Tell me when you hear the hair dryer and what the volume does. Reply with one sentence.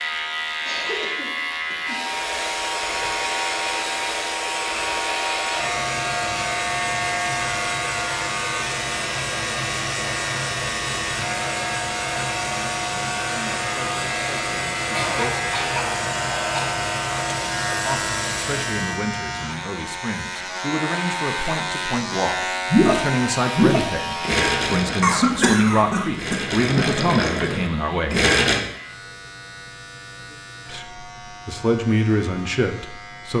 The hair dryer can be heard from 2.0 to 18.9 s, at a steady volume.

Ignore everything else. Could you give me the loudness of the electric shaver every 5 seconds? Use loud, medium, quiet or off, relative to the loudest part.
loud, loud, loud, loud, loud, quiet, quiet.